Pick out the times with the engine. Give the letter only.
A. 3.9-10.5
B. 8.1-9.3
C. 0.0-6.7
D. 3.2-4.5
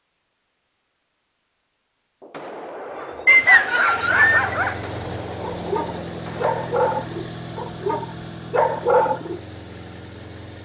A.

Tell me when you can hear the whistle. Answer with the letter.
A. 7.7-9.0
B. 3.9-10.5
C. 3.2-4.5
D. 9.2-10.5
C.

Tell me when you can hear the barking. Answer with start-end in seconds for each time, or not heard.
2.8-9.4.